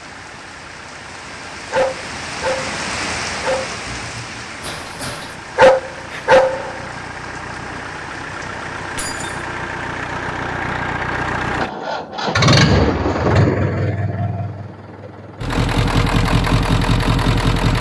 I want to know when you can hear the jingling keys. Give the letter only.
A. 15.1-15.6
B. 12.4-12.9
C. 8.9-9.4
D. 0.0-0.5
C.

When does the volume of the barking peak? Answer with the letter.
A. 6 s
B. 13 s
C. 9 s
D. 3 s
A.